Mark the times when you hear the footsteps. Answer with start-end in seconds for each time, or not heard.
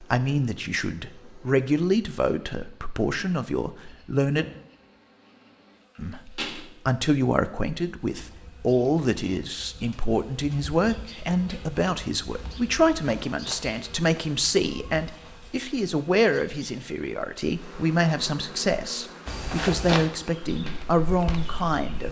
19.2-22.0.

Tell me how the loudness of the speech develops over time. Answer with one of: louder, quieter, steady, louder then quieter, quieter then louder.
steady.